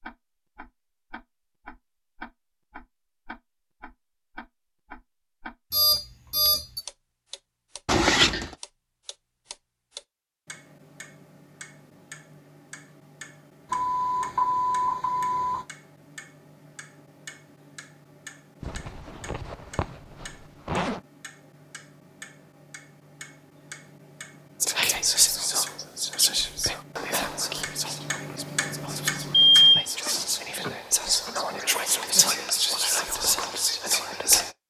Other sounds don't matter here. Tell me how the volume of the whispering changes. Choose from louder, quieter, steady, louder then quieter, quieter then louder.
quieter then louder.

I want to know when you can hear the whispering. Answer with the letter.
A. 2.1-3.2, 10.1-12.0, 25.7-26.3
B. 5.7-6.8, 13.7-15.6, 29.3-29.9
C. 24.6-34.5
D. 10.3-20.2
C.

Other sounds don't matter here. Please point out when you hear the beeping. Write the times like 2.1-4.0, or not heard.
5.7-6.8, 13.7-15.6, 29.3-29.9.